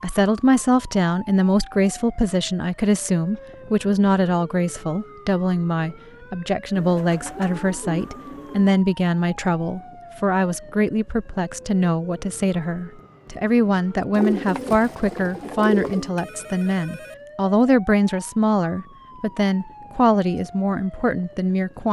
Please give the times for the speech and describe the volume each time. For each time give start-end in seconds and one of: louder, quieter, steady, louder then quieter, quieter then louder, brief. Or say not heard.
0.0-21.8 steady.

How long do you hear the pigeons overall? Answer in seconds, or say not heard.
4 s.